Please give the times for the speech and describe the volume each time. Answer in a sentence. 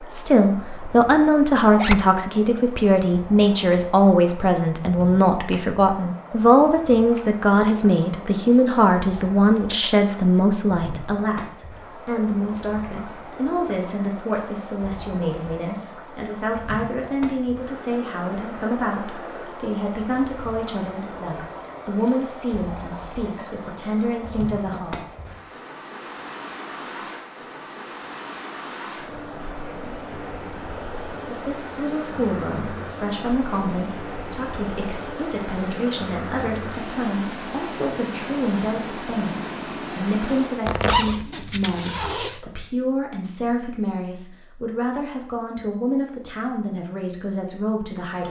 You can hear the speech from 0.0 to 24.9 s, getting quieter; and from 31.2 to 48.2 s, at a steady volume.